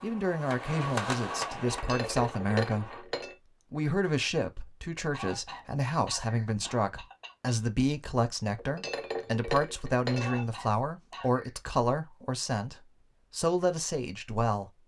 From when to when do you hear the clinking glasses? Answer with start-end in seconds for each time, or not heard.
1.7-3.4, 8.6-10.4.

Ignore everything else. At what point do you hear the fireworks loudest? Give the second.
1 s.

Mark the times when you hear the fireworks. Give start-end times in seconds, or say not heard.
0.0-3.0.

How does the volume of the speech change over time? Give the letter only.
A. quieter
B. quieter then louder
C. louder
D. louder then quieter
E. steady
E.